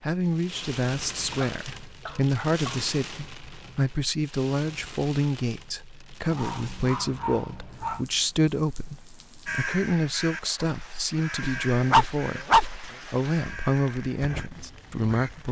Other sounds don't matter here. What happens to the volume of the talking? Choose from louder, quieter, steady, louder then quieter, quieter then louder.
steady.